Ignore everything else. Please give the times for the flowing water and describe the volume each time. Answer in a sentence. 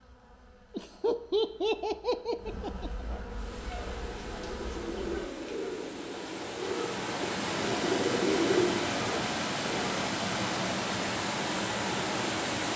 You can hear the flowing water from 3.2 to 12.7 s, getting louder.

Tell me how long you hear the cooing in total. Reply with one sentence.
You can hear the cooing for 6 seconds altogether.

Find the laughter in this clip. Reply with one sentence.
The laughter can be heard from 0.7 to 2.9 s.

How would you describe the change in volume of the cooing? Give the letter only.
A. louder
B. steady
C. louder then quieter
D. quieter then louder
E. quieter
A.